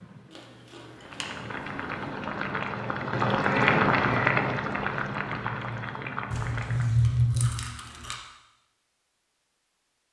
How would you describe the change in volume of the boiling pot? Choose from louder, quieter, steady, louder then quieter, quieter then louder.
louder then quieter.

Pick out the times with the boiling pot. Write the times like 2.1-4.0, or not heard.
0.0-6.9.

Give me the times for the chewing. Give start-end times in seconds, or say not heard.
0.3-1.2, 6.3-8.2.